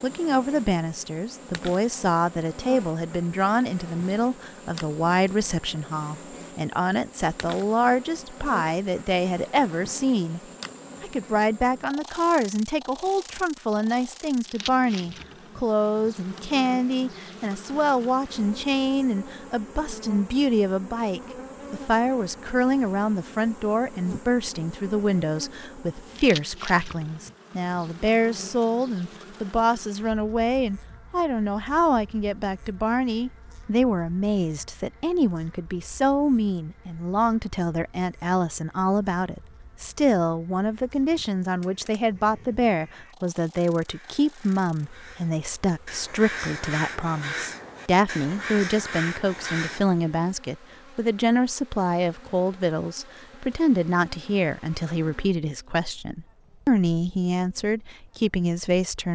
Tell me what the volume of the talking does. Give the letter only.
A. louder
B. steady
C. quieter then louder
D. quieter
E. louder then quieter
B.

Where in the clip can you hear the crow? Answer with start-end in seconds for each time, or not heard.
41.6-49.8.